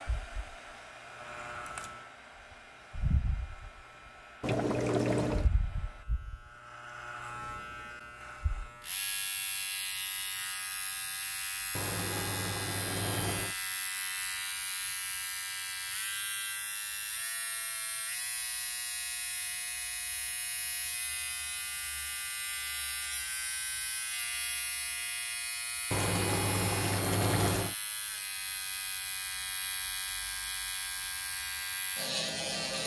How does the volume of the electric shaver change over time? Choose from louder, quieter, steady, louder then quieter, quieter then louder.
louder.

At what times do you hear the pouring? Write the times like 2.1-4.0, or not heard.
4.4-5.5, 11.7-13.6, 25.9-27.8.